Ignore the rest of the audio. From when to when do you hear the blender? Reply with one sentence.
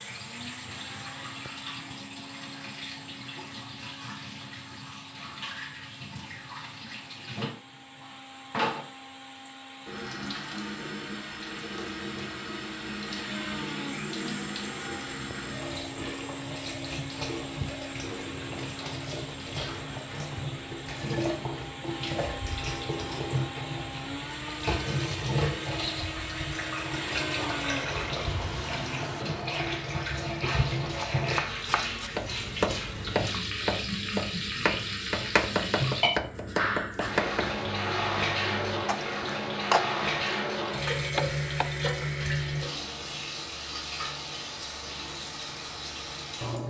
You can hear the blender from 0.0 to 29.2 s.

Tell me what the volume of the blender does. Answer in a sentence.
The volume of the blender goes up.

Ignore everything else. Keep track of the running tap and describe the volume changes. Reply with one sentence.
The volume of the running tap goes up.